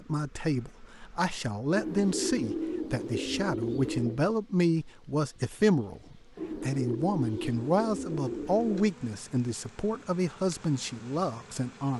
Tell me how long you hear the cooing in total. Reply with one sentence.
The cooing can be heard for 5 seconds in total.